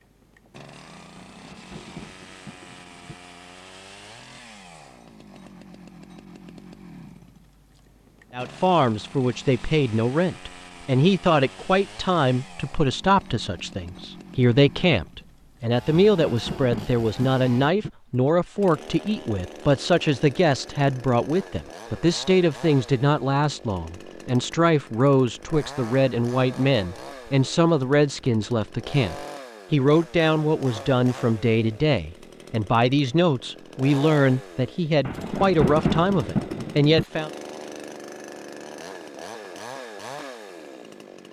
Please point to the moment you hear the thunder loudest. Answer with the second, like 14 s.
36 s.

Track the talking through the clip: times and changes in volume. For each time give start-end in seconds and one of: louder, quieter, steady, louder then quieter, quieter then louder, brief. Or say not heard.
8.3-37.3 steady.